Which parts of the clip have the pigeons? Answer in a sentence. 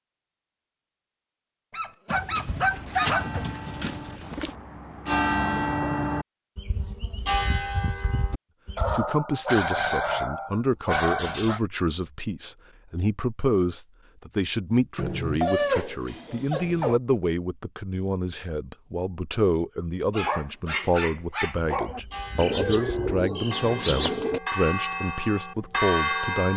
The pigeons can be heard from 2.0 to 4.5 s and from 22.4 to 24.4 s.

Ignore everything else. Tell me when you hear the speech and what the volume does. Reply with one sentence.
You can hear the speech from 8.9 to 26.5 s, at a steady volume.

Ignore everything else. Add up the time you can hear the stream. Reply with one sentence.
You can't hear the stream here.